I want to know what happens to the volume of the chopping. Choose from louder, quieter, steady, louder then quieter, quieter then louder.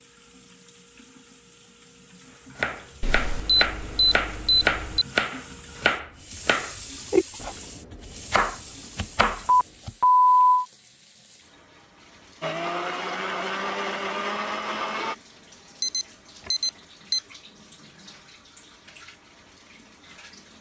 steady.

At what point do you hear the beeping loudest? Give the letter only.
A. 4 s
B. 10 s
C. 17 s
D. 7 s
B.